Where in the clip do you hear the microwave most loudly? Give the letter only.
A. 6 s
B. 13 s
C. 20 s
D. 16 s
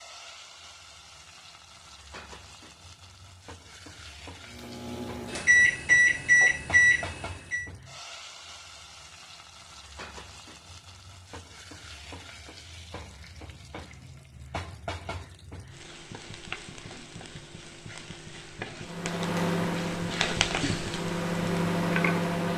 A.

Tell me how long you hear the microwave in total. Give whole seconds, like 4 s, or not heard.
7 s.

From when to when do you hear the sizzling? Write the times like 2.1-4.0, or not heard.
0.0-22.3.